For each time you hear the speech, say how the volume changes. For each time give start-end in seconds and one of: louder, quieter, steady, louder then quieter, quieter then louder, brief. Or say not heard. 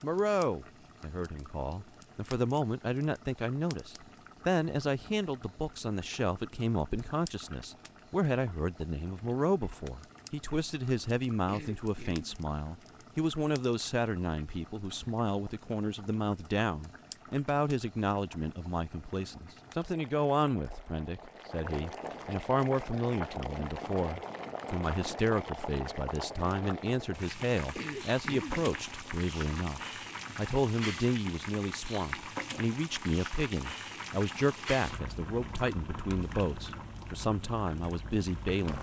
0.0-38.7 steady.